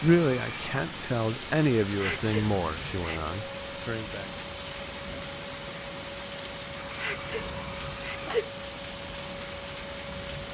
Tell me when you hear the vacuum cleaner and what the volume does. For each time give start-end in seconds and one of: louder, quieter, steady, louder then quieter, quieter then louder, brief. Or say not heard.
0.0-10.4 steady.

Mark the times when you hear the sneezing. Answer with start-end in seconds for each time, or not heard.
1.9-3.4, 6.8-8.5.